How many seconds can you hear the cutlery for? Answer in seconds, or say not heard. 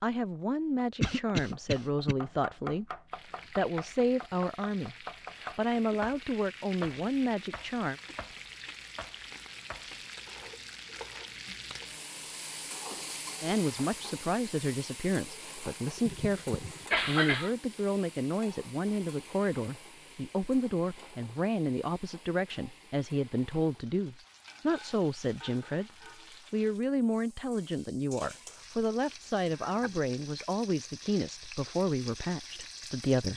not heard.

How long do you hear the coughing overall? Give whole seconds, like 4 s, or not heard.
3 s.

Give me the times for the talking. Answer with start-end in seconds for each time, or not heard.
0.0-2.9, 3.5-8.0, 13.4-25.9, 26.5-33.3.